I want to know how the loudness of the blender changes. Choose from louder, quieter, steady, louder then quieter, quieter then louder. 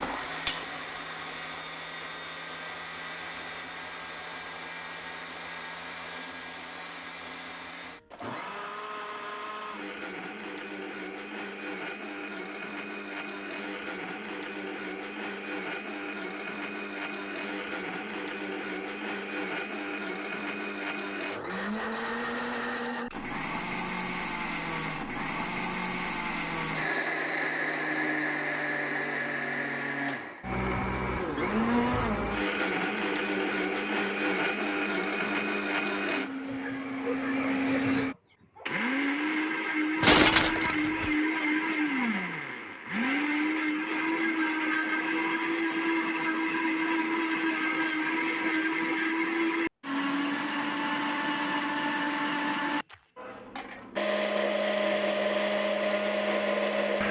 louder.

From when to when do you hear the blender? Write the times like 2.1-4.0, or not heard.
0.0-57.0.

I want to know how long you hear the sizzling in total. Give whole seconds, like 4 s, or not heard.
not heard.